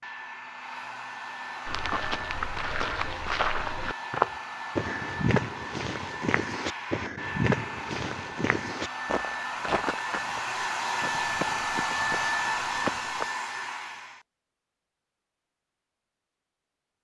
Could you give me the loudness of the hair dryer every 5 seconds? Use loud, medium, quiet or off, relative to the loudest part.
medium, medium, loud, off.